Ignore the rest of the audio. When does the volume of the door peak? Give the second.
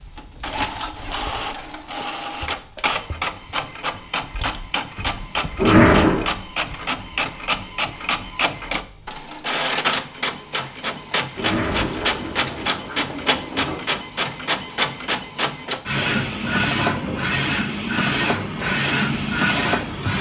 6 s.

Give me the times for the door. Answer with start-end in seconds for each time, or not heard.
5.5-6.2, 11.3-13.8.